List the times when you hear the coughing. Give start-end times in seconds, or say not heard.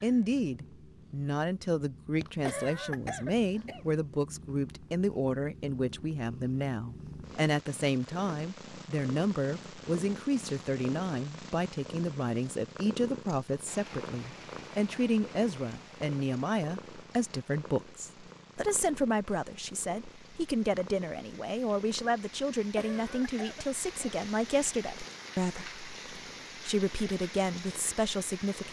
2.5-3.9, 22.8-24.2.